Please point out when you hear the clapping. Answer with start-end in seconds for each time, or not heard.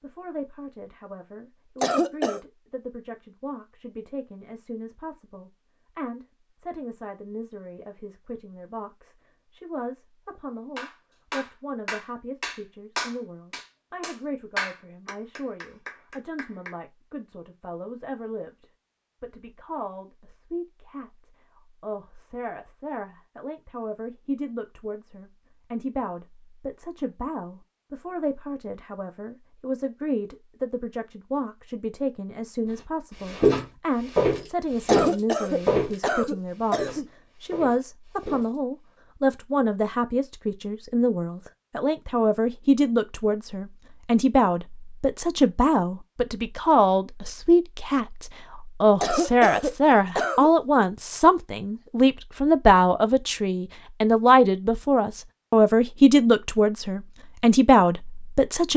10.8-16.8.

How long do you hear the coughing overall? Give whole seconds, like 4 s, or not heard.
4 s.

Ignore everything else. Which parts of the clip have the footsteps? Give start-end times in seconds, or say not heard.
33.2-38.5.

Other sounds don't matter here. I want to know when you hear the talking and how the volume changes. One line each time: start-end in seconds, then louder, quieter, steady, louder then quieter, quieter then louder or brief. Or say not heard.
0.0-58.7 louder.